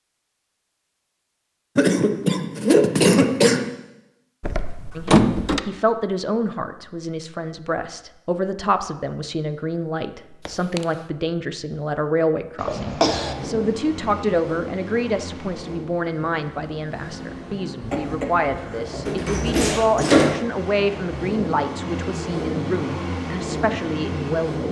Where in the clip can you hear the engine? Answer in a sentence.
The engine can be heard from 13.1 to 24.6 s.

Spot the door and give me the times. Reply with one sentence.
You can hear the door from 4.4 to 5.6 s, from 10.4 to 10.8 s and from 19.1 to 20.4 s.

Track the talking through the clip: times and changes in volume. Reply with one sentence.
You can hear the talking from 5.0 to 24.6 s, at a steady volume.